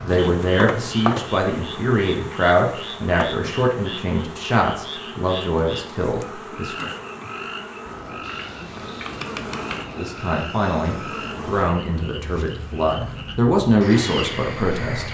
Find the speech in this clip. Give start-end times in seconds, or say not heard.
0.0-6.9, 9.9-15.0.